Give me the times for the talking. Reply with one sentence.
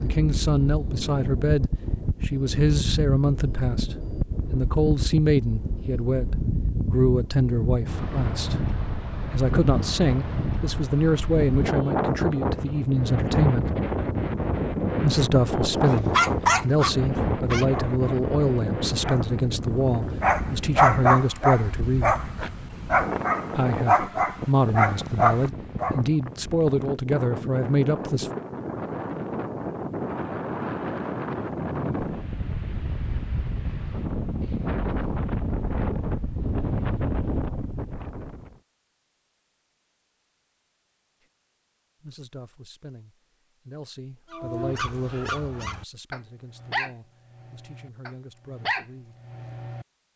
You can hear the talking from 0.0 to 8.6 s, from 9.3 to 13.7 s, from 14.9 to 22.1 s, from 23.6 to 28.3 s and from 42.0 to 49.1 s.